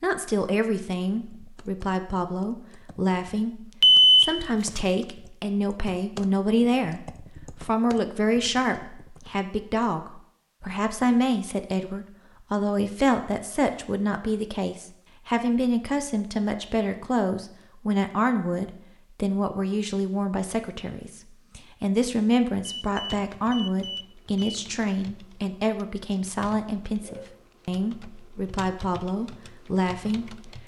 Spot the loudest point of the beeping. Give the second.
4 s.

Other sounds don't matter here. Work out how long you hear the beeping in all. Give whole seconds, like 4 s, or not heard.
3 s.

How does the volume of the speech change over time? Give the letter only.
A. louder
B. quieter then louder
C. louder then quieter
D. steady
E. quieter
D.